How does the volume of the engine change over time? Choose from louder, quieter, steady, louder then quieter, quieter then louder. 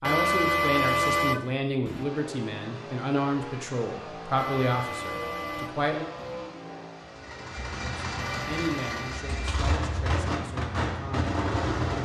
louder.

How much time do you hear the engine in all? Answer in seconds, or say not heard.
10 s.